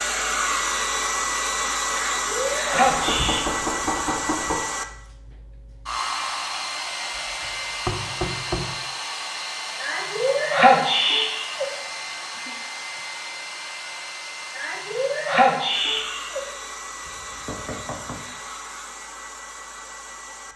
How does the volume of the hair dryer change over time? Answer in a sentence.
The loudness of the hair dryer goes down.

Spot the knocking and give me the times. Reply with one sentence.
The knocking can be heard from 2.7 to 4.7 s, from 7.3 to 8.8 s and from 17.1 to 18.2 s.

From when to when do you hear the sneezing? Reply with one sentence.
The sneezing can be heard from 1.9 to 3.5 s, from 9.8 to 11.7 s and from 14.6 to 16.4 s.